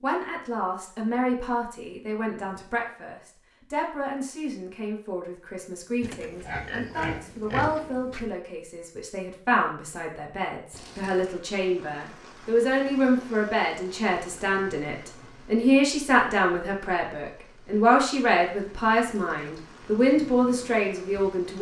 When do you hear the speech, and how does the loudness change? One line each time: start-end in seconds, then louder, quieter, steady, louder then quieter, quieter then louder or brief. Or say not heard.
0.0-21.5 louder.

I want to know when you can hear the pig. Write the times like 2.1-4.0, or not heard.
6.0-8.3.